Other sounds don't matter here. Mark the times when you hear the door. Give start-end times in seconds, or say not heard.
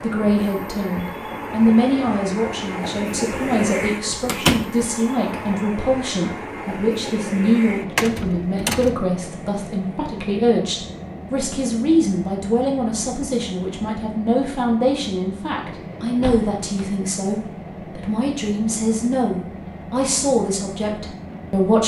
4.2-4.7, 8.0-8.9, 16.2-16.9.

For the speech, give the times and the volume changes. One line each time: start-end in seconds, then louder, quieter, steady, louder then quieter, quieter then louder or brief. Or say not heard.
0.0-21.8 steady.